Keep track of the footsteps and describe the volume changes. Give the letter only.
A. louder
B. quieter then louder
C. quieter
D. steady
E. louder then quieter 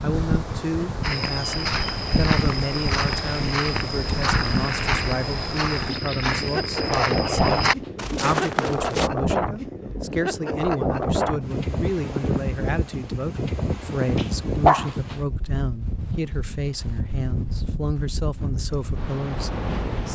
D.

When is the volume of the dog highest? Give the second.
15 s.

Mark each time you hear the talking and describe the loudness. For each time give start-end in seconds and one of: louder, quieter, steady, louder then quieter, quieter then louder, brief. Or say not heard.
0.0-20.1 steady.